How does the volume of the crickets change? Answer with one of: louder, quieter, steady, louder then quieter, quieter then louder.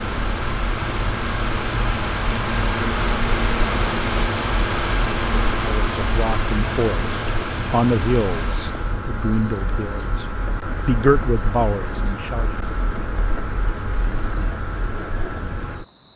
steady.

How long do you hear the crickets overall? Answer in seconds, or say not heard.
16 s.